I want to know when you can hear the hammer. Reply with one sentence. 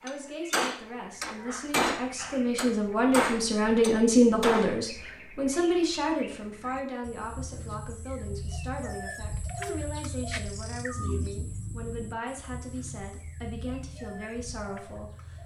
The hammer can be heard from 0.1 to 4.8 s.